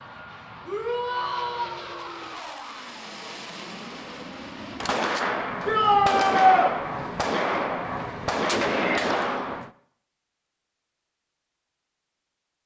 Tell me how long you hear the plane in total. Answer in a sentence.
You can hear the plane for 5 seconds altogether.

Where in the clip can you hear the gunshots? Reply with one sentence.
You can hear the gunshots from 4.8 to 9.7 s.